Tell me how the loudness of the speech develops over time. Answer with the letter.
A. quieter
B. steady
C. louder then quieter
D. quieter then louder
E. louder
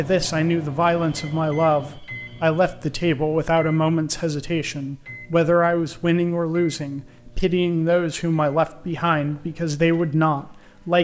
B.